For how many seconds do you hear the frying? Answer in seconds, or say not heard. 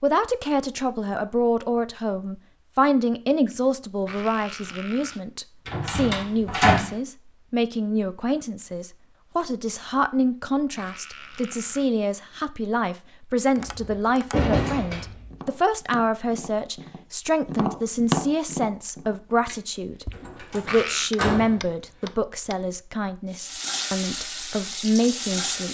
2 s.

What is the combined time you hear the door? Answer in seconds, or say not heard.
5 s.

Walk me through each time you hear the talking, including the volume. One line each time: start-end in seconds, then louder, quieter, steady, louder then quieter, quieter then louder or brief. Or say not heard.
0.0-25.6 steady.